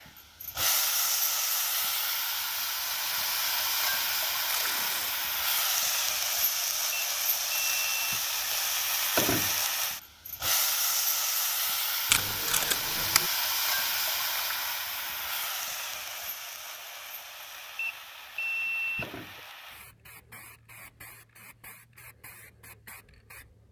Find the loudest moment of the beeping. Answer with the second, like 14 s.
19 s.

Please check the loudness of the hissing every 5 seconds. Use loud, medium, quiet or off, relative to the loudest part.
loud, loud, loud, medium, quiet.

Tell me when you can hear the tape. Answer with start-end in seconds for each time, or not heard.
4.5-5.1, 12.1-13.3.